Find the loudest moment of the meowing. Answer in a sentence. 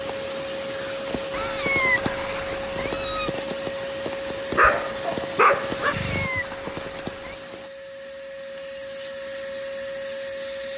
The loudest moment of the meowing is at 2 seconds.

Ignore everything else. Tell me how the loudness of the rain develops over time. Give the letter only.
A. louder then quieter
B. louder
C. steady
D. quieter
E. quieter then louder
C.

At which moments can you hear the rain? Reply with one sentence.
You can hear the rain from 0.0 to 7.7 s.